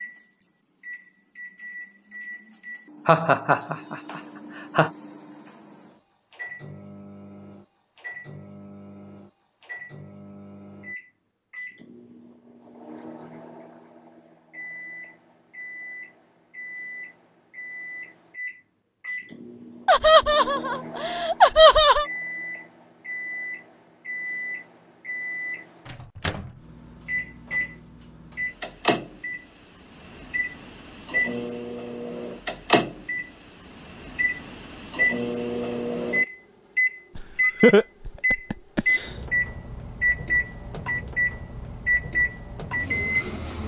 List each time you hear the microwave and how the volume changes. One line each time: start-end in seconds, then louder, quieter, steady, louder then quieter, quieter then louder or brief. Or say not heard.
0.0-43.6 louder.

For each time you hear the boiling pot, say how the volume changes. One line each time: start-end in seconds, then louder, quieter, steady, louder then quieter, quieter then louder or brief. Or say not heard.
not heard.